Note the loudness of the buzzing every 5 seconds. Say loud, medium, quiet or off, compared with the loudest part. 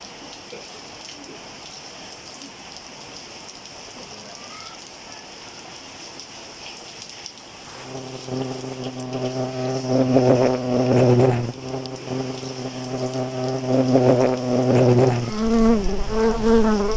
off, medium, loud, loud.